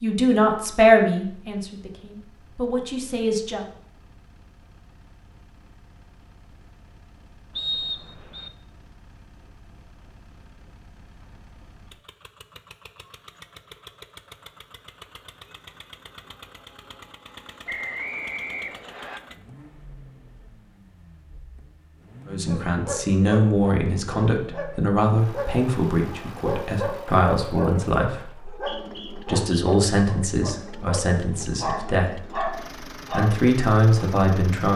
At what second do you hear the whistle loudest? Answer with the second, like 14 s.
8 s.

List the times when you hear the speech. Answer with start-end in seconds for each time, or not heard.
0.0-3.6, 22.2-34.7.